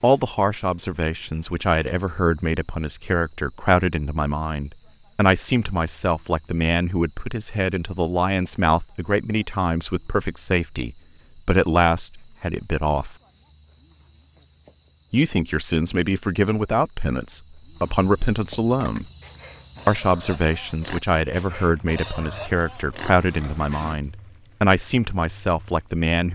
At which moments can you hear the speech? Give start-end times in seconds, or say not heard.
0.0-13.2, 15.1-19.1, 19.9-26.3.